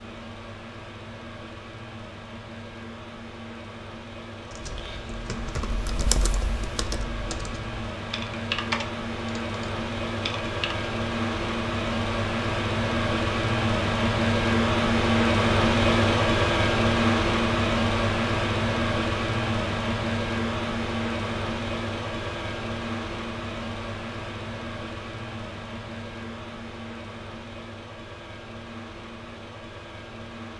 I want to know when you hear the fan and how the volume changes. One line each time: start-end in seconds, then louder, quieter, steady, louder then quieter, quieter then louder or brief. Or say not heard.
0.0-30.5 louder then quieter.